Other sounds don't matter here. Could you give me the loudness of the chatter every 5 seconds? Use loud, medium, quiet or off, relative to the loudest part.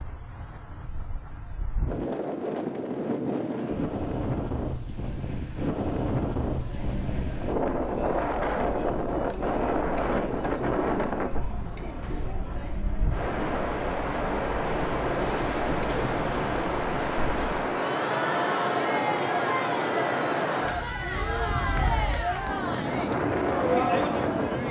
off, medium, medium, loud, loud.